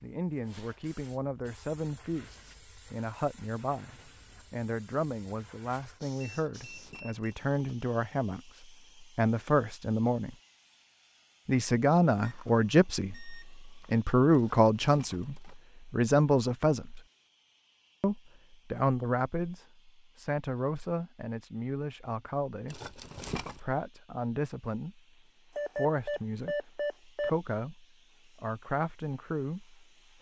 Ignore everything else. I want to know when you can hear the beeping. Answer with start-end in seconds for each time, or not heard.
6.2-7.3, 12.2-13.9, 25.6-27.3.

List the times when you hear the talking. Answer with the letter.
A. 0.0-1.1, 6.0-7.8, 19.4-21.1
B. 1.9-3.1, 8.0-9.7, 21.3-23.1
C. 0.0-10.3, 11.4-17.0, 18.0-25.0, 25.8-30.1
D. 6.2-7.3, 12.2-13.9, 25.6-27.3
C.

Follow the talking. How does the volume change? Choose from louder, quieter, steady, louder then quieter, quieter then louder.
louder then quieter.